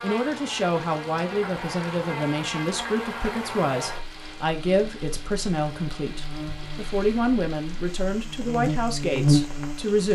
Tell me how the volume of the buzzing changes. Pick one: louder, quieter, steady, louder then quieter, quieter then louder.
quieter then louder.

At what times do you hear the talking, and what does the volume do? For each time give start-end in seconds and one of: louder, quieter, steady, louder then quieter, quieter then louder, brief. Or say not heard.
0.0-10.1 steady.